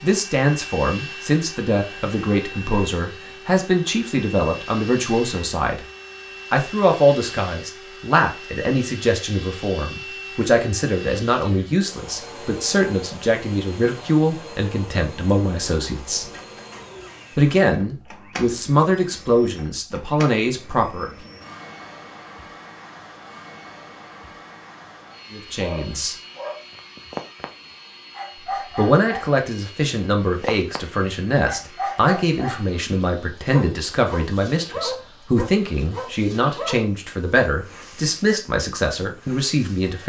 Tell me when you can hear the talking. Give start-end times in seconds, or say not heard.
0.0-5.8, 6.5-16.2, 17.4-21.1, 25.3-26.1, 28.8-40.0.